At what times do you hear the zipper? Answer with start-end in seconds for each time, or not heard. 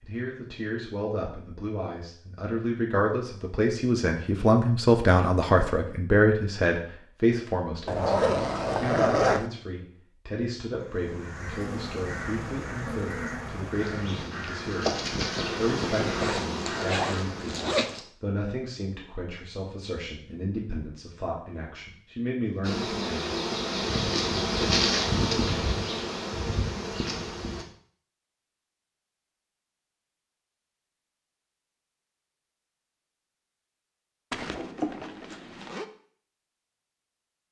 7.8-9.5, 16.2-18.0, 34.3-35.9.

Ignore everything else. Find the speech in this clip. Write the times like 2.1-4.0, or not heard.
0.0-23.3.